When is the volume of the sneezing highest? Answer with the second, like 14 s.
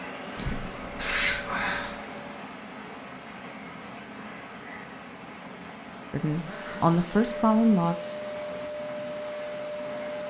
1 s.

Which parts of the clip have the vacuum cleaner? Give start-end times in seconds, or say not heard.
0.0-2.4, 6.1-10.2.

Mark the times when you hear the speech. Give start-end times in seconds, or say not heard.
6.1-8.0.